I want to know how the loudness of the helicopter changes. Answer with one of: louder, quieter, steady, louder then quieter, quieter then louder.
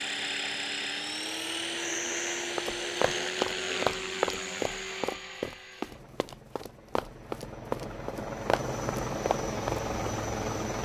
quieter then louder.